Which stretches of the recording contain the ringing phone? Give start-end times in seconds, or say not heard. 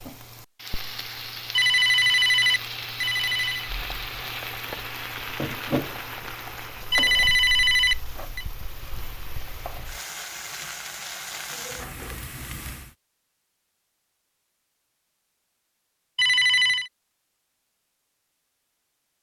1.6-3.7, 6.9-8.4, 16.1-16.9.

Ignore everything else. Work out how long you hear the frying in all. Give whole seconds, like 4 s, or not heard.
13 s.